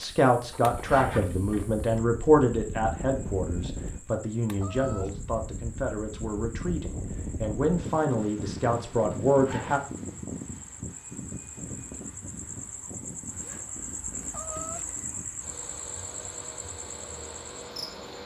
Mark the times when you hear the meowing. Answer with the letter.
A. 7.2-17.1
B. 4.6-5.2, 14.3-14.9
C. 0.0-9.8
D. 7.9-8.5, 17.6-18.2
B.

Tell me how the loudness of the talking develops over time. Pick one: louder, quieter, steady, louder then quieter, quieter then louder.
quieter then louder.